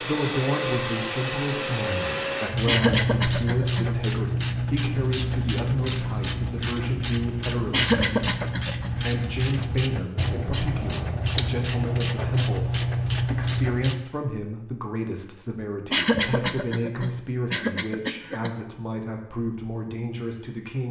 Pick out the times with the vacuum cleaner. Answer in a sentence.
You can hear the vacuum cleaner from 0.0 to 2.5 s.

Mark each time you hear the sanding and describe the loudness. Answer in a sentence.
The sanding can't be heard in this clip.